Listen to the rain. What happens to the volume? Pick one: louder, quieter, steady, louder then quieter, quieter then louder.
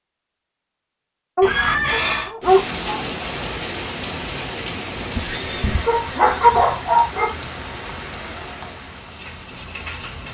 quieter.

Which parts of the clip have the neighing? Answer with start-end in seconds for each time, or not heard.
1.4-2.3, 5.2-6.8.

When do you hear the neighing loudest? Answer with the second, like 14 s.
2 s.